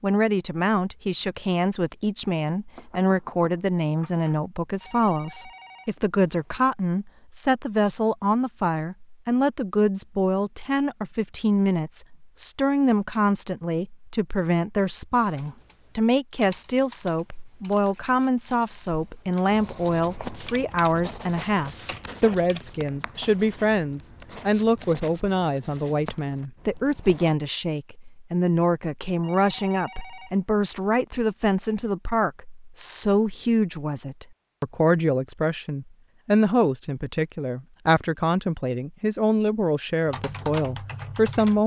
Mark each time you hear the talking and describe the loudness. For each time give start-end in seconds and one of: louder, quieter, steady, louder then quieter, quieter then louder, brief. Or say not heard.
0.0-41.6 steady.